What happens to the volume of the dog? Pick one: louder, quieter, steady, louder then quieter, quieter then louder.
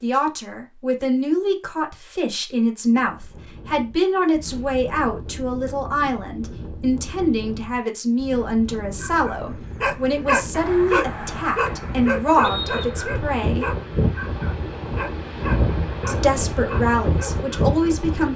quieter.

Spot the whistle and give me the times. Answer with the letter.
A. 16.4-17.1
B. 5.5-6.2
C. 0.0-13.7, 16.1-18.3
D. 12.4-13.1
D.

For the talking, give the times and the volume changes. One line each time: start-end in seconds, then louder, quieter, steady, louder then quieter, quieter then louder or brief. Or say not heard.
0.0-13.7 steady
16.1-18.3 brief.